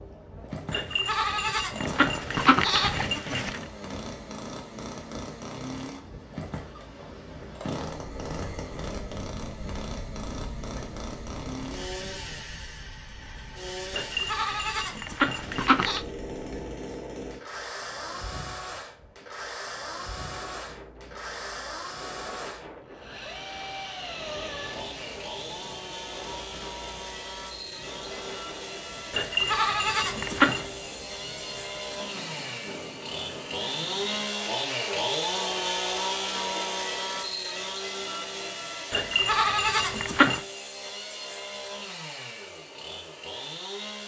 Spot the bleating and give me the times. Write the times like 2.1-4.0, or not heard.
0.7-3.6, 13.9-16.1, 29.1-30.6, 38.9-40.4.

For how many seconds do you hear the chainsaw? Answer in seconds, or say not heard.
44 s.